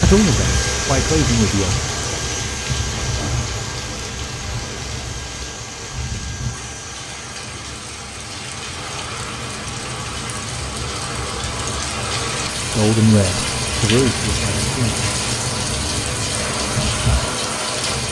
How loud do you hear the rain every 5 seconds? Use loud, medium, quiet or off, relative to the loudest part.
loud, medium, loud, loud.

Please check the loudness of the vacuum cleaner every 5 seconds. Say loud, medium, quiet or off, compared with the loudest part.
loud, medium, off, off.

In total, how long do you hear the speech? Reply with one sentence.
The speech can be heard for 4 seconds in total.